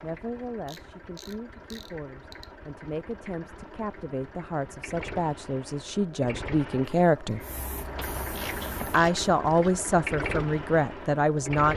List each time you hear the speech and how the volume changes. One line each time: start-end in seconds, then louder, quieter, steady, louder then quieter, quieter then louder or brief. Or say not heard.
0.0-7.4 louder
8.8-11.7 brief.